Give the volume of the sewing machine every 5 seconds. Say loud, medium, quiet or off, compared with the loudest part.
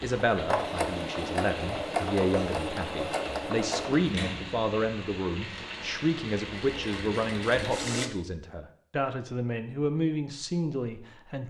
loud, medium, off.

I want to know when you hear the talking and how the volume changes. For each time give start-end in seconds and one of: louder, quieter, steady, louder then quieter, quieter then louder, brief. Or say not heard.
0.0-11.4 steady.